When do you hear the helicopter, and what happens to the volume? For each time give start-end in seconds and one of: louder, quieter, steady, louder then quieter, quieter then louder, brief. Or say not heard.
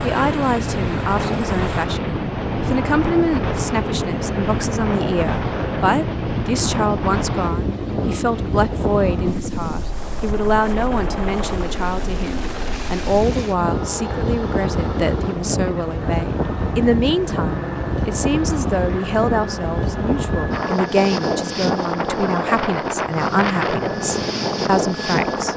0.0-25.5 steady.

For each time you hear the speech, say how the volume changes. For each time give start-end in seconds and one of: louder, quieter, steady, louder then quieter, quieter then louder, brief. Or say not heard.
0.0-25.5 steady.